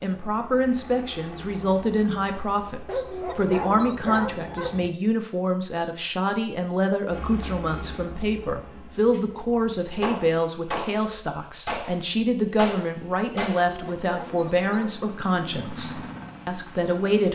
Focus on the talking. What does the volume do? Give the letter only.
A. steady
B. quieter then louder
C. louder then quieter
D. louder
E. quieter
A.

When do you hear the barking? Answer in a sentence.
The barking can be heard from 2.9 to 4.9 s and from 13.7 to 15.0 s.